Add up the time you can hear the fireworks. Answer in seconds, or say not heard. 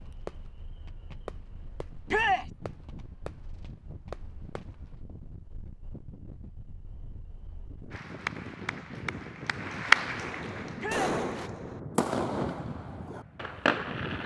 9 s.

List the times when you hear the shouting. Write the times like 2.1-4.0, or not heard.
2.0-2.5, 10.8-11.2.